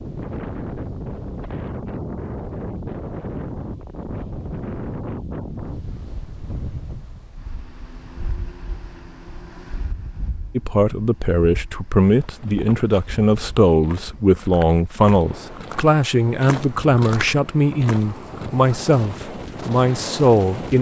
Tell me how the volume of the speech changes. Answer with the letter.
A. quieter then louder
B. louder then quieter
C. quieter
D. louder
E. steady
E.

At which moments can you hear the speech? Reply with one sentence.
You can hear the speech from 10.6 to 20.7 s.